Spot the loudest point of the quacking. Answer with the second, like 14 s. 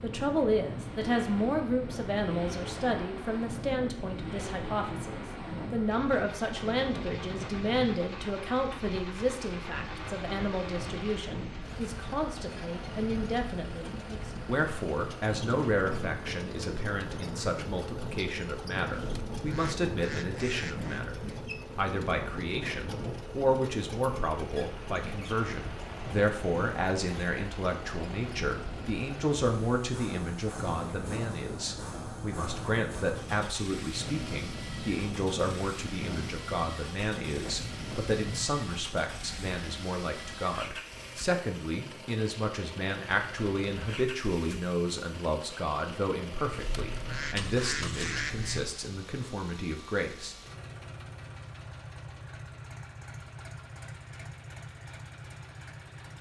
48 s.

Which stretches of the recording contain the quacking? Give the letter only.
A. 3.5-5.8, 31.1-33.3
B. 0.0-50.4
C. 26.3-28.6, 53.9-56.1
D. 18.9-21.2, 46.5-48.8
D.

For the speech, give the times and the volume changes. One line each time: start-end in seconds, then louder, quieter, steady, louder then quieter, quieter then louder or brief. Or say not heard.
0.0-50.4 steady.